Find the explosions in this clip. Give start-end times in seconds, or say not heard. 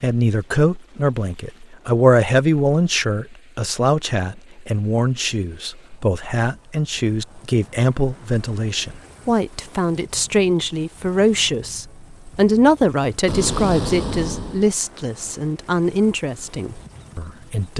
13.2-14.8.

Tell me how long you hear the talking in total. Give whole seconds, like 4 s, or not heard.
18 s.